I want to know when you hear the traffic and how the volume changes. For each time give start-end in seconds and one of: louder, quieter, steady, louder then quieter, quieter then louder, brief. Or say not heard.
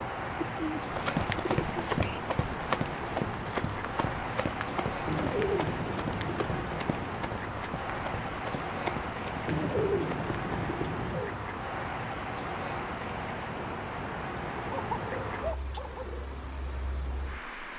0.0-17.7 steady.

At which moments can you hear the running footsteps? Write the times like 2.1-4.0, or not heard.
0.9-10.8.